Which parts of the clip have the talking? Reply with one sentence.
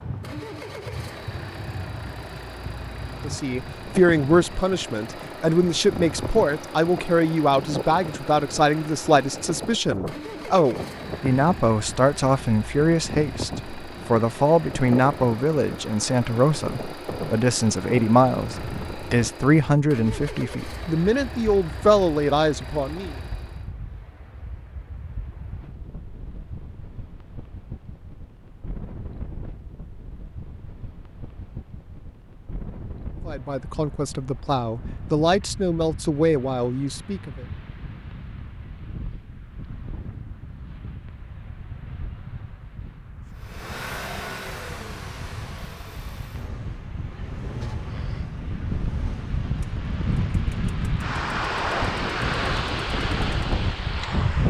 You can hear the talking from 3.2 to 23.1 s and from 33.2 to 37.5 s.